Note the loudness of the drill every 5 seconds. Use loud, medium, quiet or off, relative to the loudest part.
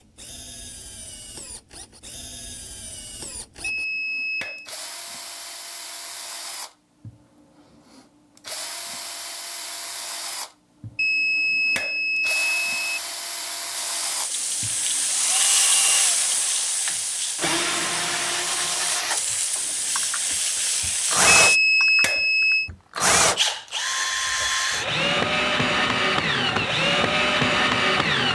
quiet, quiet, quiet, medium, loud, loud.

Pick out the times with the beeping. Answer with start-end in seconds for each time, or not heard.
3.6-4.7, 10.9-13.0, 21.2-22.7.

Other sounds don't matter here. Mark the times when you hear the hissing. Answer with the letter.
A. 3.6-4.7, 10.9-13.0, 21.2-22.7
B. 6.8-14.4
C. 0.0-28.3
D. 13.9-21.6
D.